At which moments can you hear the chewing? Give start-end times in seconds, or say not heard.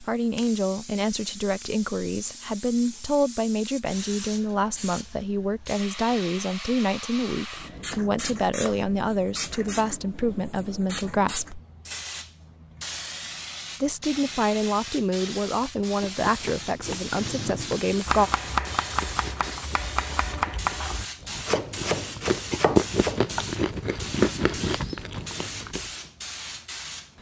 16.1-25.9.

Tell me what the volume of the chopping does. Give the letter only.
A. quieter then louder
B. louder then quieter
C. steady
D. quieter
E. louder
C.